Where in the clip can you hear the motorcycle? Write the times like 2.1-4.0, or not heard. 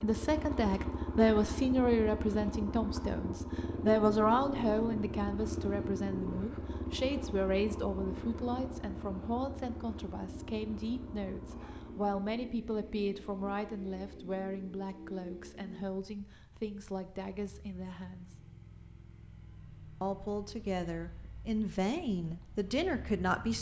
0.0-23.5.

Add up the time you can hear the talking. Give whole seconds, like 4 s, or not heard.
22 s.